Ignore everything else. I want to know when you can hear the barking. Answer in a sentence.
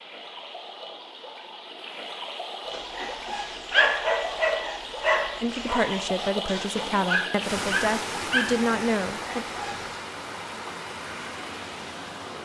You can hear the barking from 2.7 to 9.9 s.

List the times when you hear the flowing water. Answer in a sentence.
The flowing water can be heard from 0.0 to 12.3 s.